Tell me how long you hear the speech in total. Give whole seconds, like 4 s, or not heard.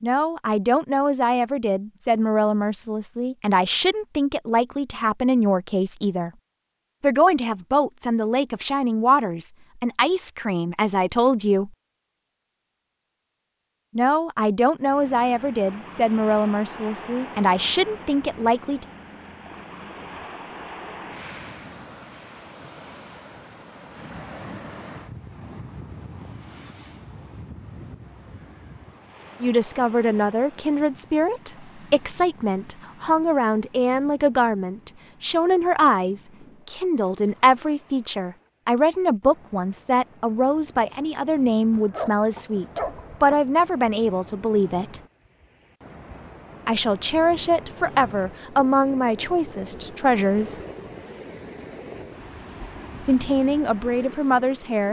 37 s.